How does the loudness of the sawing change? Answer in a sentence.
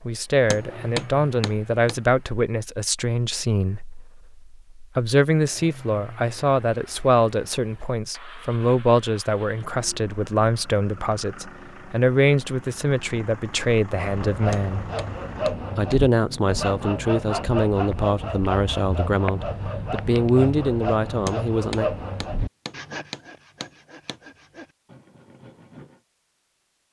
The loudness of the sawing goes down.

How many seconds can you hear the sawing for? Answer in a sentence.
You can hear the sawing for 12 seconds altogether.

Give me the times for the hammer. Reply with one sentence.
The hammer can be heard from 0.5 to 1.9 s, from 14.5 to 16.1 s and from 21.2 to 24.2 s.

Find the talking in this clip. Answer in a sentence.
The talking can be heard from 0.0 to 14.8 s and from 15.8 to 21.9 s.